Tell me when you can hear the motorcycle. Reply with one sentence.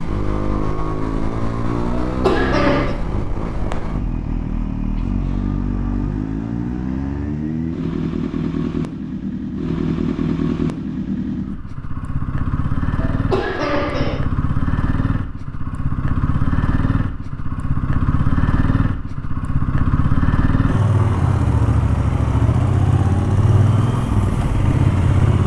The motorcycle can be heard from 0.0 to 25.4 s.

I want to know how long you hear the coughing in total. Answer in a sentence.
You can hear the coughing for 2 seconds altogether.